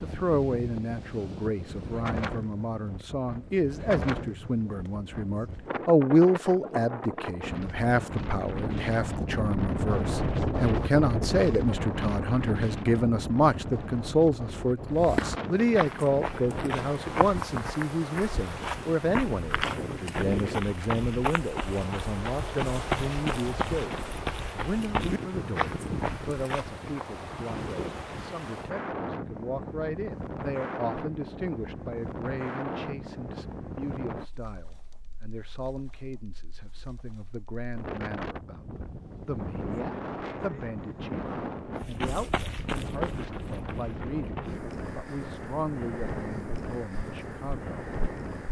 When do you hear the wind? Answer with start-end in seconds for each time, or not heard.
0.0-48.4.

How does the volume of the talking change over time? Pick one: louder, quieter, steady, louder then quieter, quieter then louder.
quieter.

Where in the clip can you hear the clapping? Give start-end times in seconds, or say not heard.
not heard.